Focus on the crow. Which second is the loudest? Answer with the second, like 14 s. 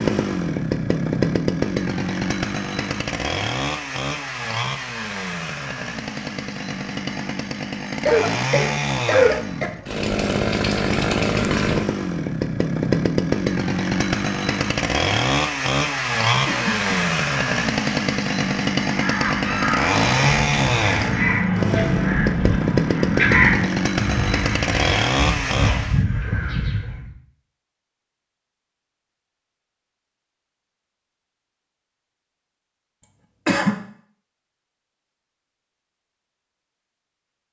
23 s.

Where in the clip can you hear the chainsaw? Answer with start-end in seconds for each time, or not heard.
0.0-26.0.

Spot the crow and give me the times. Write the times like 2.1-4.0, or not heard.
18.9-27.1.